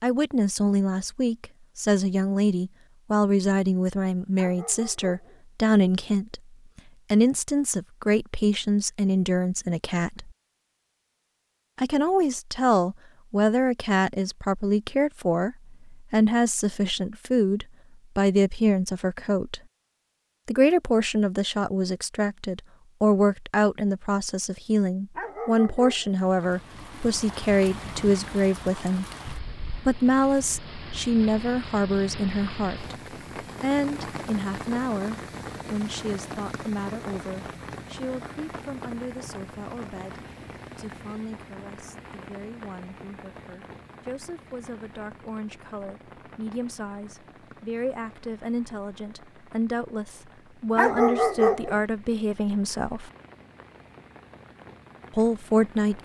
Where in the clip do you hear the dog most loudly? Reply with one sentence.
The loudest moment of the dog is at 51 seconds.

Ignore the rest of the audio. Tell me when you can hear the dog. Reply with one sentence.
You can hear the dog from 4.3 to 5.4 s, from 25.1 to 26.2 s and from 50.8 to 51.8 s.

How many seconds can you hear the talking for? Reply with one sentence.
The talking can be heard for 50 seconds in total.